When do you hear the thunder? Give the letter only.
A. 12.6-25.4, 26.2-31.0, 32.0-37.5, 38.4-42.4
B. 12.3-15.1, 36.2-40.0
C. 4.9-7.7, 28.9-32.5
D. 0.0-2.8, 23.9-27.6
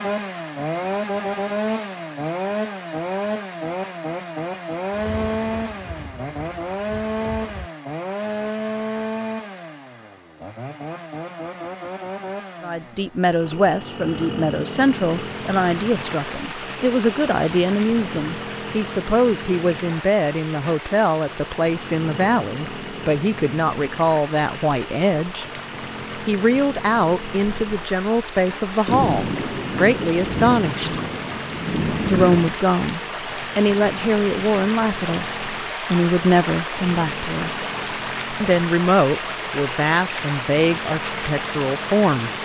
C.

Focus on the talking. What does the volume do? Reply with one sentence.
The loudness of the talking stays about the same.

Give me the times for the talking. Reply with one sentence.
You can hear the talking from 12.6 to 25.4 s, from 26.2 to 31.0 s, from 32.0 to 37.5 s and from 38.4 to 42.4 s.